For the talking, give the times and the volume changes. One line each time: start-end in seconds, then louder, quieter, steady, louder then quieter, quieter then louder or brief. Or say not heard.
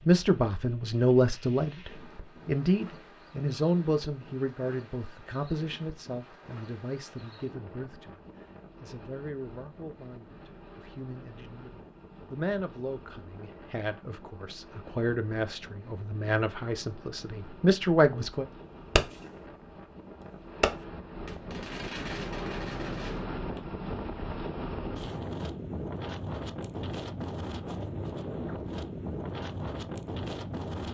0.1-18.4 quieter then louder.